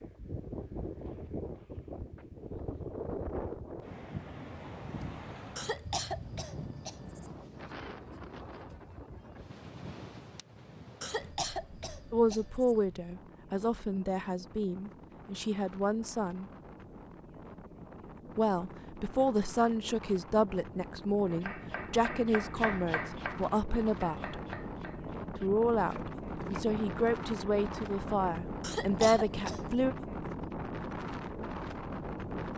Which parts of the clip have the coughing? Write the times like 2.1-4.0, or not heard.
5.5-7.3, 11.0-12.8, 28.6-29.6.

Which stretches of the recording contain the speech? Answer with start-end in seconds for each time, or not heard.
12.1-16.5, 18.4-24.4, 25.4-29.9.